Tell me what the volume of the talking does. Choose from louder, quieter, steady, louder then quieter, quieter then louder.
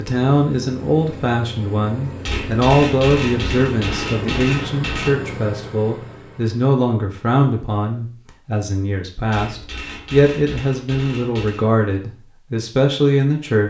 steady.